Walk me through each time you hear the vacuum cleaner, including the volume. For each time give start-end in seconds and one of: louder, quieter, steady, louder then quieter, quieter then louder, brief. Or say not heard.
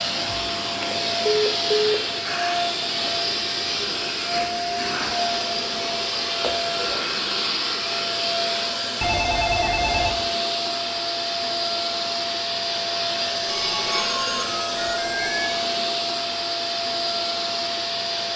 0.0-18.3 steady.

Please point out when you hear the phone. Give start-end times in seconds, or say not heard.
0.7-1.9, 9.0-10.2, 13.4-15.7.